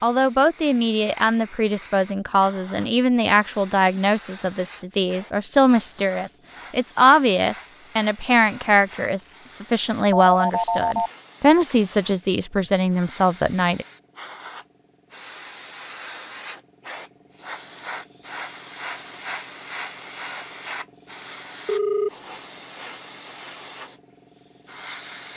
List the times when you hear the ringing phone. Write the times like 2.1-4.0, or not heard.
10.3-11.1, 21.6-22.1.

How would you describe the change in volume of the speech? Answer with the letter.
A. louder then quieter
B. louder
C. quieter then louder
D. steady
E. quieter
D.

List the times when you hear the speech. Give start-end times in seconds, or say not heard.
0.0-13.8.